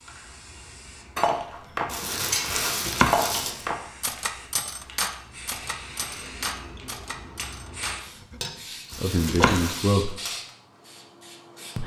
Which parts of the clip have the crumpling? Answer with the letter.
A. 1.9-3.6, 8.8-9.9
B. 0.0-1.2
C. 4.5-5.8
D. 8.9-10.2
A.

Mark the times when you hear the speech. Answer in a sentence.
The speech can be heard from 8.9 to 10.2 s.